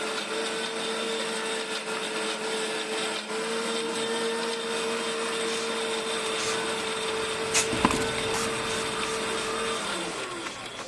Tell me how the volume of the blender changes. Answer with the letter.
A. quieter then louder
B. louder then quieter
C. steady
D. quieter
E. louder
C.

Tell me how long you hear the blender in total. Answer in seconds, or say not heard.
11 s.